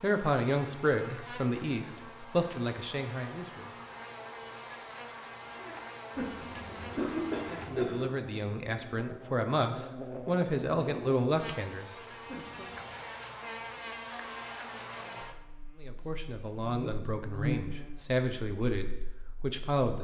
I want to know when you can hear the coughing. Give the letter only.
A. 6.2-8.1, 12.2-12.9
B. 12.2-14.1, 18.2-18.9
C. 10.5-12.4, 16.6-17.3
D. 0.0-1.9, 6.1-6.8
A.